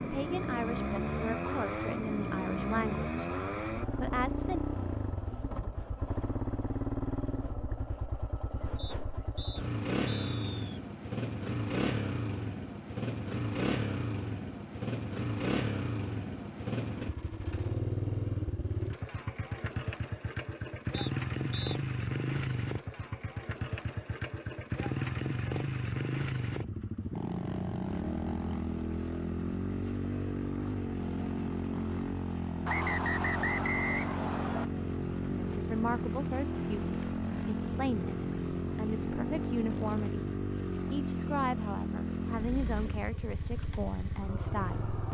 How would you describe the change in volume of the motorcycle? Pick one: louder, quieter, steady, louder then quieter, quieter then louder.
steady.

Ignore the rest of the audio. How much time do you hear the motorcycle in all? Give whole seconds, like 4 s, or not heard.
45 s.